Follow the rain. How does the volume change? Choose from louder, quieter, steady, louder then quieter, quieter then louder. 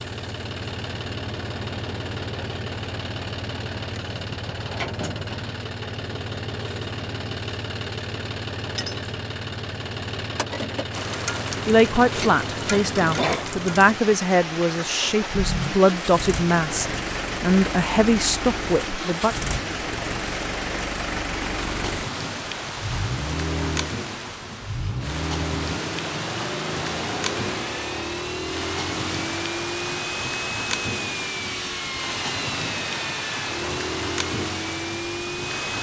steady.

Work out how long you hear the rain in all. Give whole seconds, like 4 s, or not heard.
25 s.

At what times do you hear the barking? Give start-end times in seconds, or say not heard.
not heard.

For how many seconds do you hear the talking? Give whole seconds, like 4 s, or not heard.
8 s.